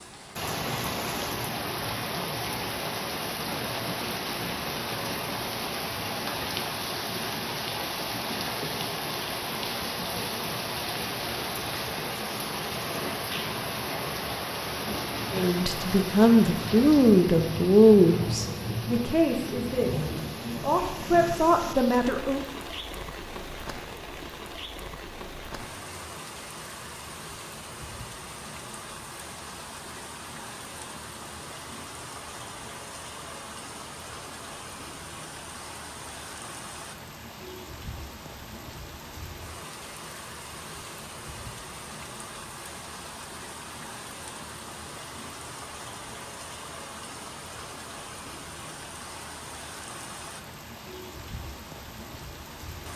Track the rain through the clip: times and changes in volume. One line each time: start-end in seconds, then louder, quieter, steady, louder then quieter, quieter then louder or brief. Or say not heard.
0.0-52.9 quieter.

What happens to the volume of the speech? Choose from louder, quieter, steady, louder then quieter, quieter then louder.
quieter then louder.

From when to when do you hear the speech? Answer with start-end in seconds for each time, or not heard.
15.3-22.4.